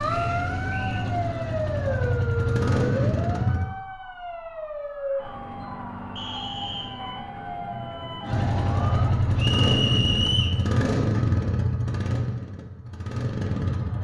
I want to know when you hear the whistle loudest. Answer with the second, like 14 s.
10 s.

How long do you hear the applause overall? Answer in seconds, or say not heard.
not heard.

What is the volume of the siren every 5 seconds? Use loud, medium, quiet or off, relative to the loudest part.
loud, loud, off.